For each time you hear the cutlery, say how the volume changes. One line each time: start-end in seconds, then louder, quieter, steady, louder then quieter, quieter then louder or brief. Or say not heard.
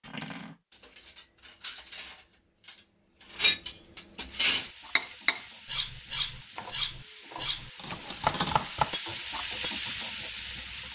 0.0-9.8 louder then quieter.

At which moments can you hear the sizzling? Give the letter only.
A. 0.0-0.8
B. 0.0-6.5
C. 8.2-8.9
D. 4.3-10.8
D.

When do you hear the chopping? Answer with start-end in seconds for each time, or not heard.
8.2-8.9.